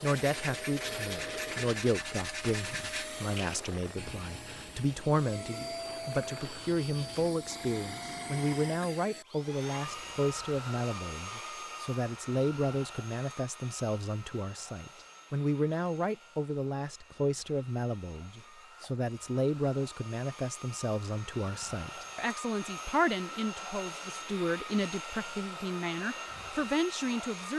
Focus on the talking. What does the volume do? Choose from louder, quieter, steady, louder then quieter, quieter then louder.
steady.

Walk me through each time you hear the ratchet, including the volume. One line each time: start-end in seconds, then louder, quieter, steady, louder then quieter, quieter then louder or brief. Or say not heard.
not heard.